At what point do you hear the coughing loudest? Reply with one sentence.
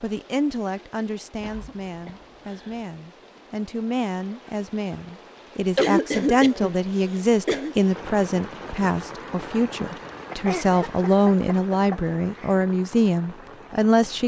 The volume of the coughing peaks at 6 seconds.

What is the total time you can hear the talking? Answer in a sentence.
The talking can be heard for 14 seconds in total.